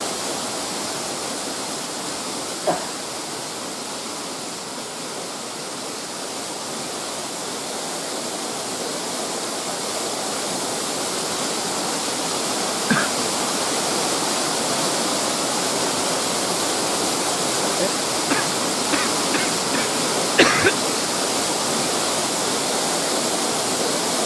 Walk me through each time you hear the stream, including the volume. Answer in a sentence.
The stream can be heard from 0.0 to 24.2 s, getting louder.